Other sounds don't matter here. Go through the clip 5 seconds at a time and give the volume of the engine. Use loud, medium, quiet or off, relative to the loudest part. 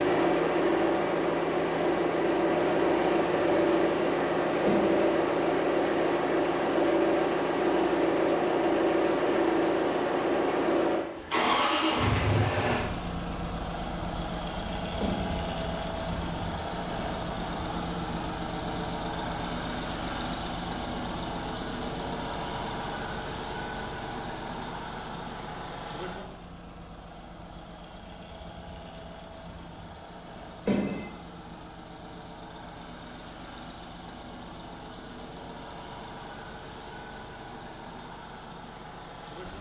loud, loud, loud, medium, medium, quiet, quiet, quiet.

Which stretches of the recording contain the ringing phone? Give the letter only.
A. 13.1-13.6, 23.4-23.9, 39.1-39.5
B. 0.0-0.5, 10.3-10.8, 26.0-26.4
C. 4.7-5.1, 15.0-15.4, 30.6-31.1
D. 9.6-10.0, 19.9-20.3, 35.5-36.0
C.